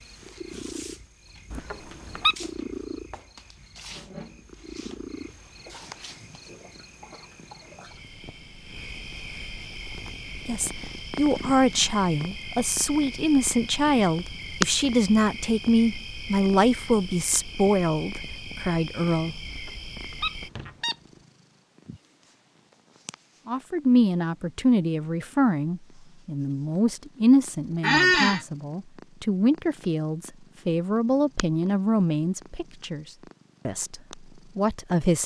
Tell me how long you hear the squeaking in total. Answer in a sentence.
You can hear the squeaking for 3 seconds altogether.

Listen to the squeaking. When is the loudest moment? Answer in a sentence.
The loudest moment of the squeaking is at 28 seconds.